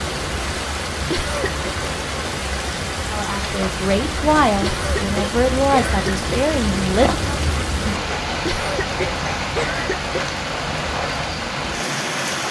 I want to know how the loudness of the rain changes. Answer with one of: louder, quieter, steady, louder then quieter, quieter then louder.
steady.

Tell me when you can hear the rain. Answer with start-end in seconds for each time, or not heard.
0.0-12.4.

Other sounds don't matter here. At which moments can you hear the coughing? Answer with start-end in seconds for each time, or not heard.
1.1-1.6, 4.6-6.5, 8.4-10.3.